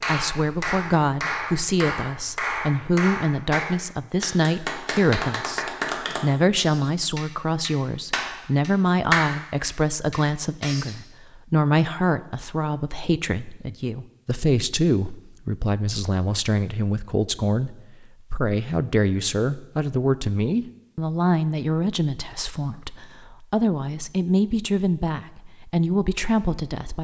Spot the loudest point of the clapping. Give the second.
9 s.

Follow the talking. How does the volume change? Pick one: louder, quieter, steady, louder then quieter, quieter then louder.
steady.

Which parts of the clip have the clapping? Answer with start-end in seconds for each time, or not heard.
0.0-10.9.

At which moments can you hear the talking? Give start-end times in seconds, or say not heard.
0.1-26.9.